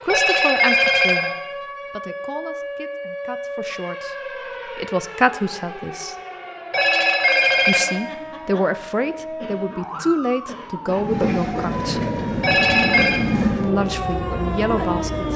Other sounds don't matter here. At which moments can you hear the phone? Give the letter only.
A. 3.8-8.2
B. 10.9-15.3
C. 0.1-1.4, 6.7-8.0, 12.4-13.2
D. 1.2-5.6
C.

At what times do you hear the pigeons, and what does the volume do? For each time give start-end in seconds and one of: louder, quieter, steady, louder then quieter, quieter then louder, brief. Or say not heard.
not heard.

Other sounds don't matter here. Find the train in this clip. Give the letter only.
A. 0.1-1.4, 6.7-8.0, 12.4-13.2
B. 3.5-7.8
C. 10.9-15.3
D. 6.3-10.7
C.